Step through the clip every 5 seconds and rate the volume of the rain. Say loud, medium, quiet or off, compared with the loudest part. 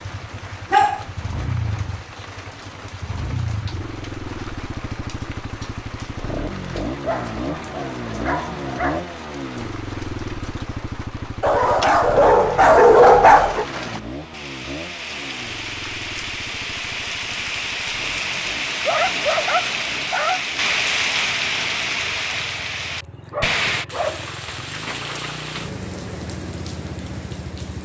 quiet, quiet, medium, loud, loud, medium.